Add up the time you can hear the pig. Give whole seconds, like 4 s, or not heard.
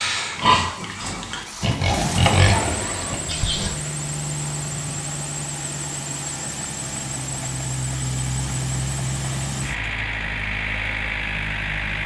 4 s.